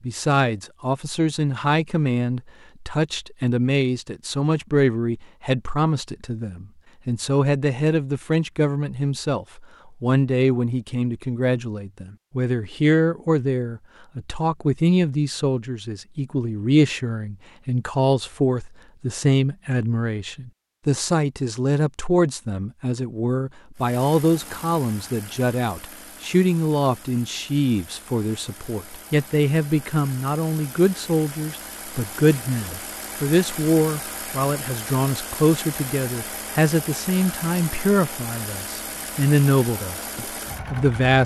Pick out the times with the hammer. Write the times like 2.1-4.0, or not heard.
not heard.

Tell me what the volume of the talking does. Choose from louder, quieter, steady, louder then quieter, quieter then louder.
steady.